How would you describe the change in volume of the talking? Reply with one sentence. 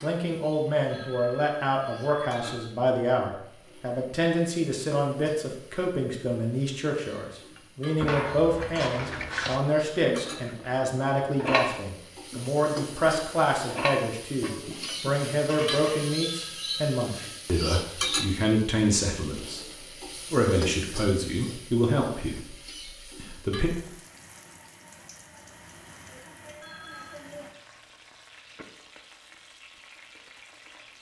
The loudness of the talking stays about the same.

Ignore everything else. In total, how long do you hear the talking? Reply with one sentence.
The talking can be heard for 23 seconds in total.